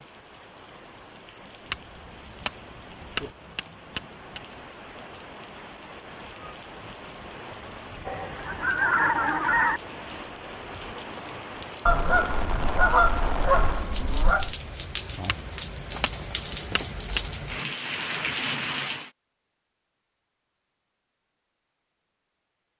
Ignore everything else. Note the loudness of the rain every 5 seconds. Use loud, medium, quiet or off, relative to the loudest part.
quiet, medium, loud, loud, off.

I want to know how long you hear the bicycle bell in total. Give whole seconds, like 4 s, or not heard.
5 s.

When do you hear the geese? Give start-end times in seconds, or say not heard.
8.1-9.8, 11.8-14.6.